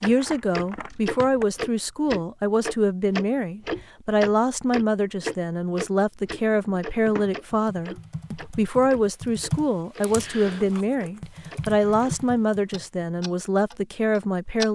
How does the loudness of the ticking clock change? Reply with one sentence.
The volume of the ticking clock goes down, then up.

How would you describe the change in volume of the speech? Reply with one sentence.
The loudness of the speech stays about the same.